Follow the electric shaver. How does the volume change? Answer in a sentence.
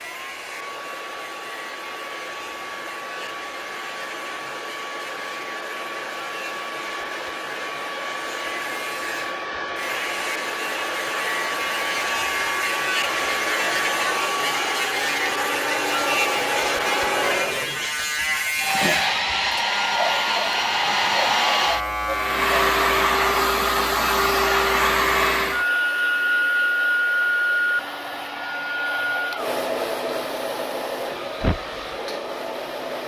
The loudness of the electric shaver goes up.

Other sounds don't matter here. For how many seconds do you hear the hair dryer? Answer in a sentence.
You can hear the hair dryer for 33 seconds altogether.